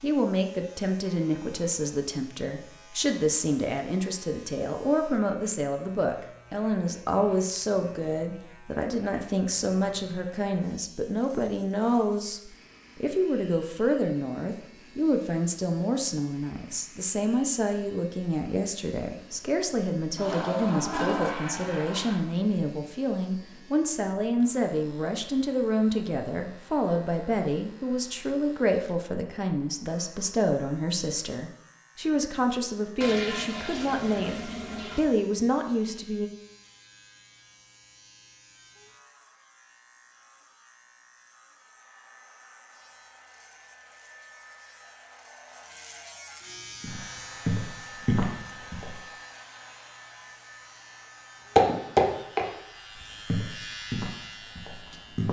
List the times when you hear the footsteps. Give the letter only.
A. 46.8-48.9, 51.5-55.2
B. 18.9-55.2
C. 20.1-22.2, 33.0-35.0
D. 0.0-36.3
A.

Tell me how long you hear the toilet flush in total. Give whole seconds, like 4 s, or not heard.
4 s.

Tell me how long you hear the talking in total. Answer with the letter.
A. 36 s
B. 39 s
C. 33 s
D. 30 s
A.